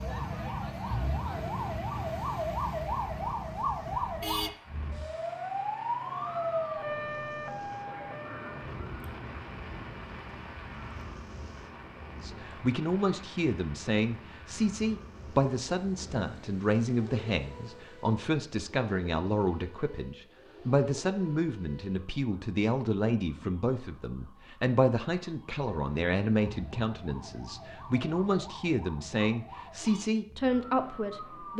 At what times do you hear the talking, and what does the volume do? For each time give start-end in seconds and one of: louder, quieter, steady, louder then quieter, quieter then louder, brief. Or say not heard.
12.2-31.5 steady.